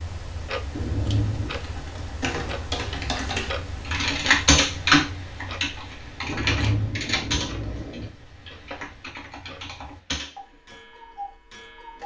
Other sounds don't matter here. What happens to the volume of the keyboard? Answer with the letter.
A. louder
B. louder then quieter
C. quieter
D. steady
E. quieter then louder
B.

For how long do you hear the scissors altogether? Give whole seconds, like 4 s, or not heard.
3 s.